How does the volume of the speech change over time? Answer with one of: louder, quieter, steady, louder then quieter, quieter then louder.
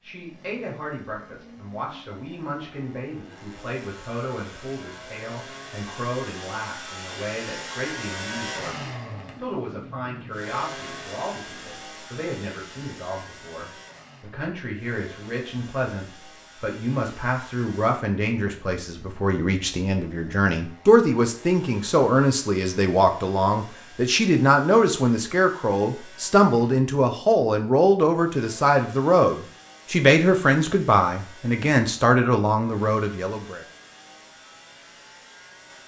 louder.